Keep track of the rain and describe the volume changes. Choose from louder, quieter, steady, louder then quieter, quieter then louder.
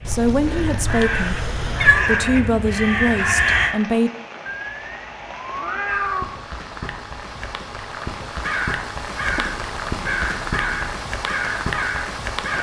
louder.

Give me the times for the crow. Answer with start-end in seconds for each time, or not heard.
0.0-3.8, 8.4-12.5.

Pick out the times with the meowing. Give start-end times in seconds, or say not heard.
0.1-2.0, 4.5-6.2, 9.2-11.0.